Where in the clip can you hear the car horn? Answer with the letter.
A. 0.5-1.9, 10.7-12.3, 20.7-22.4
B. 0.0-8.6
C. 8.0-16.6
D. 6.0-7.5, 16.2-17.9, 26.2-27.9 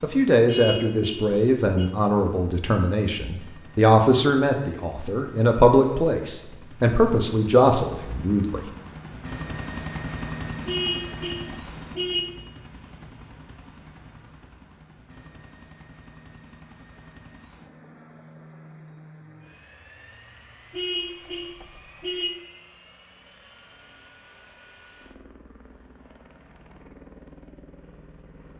A.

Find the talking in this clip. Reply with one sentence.
The talking can be heard from 0.0 to 8.6 s.